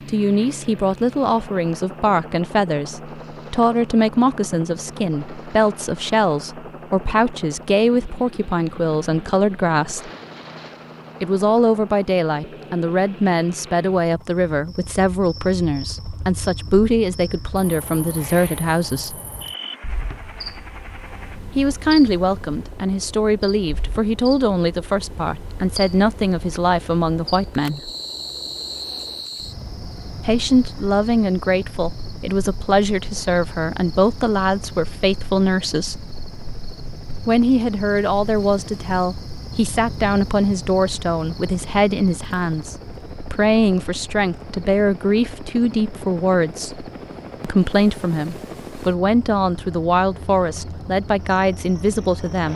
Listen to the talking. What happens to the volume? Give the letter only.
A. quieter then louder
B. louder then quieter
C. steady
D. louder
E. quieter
C.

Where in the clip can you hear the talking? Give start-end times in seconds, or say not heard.
0.1-10.1, 11.2-19.2, 21.6-27.9, 30.2-36.0, 37.2-52.5.